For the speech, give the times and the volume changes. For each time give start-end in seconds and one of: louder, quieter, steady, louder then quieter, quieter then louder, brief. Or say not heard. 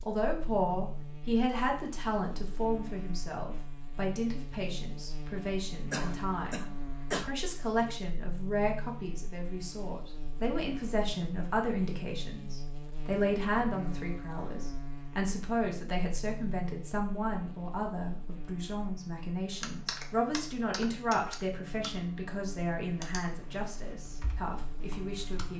0.0-25.5 steady.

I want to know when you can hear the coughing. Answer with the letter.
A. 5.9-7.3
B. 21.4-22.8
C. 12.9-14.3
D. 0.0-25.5
A.